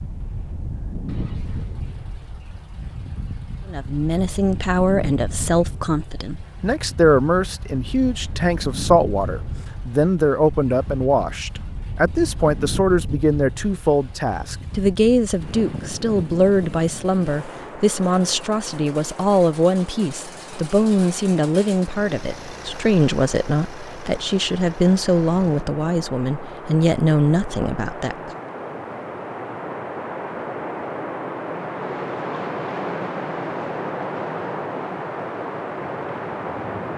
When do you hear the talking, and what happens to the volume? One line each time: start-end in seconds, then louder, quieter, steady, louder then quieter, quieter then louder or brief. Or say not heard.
3.6-28.3 steady.